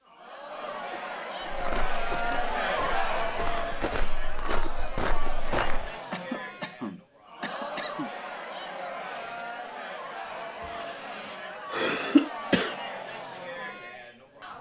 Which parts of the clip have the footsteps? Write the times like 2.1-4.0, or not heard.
1.4-5.9.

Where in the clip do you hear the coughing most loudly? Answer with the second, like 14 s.
12 s.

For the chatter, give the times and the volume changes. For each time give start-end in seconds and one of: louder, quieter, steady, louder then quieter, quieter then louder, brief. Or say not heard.
0.0-14.5 quieter.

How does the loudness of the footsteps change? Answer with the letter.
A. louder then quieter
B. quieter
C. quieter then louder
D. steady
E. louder
E.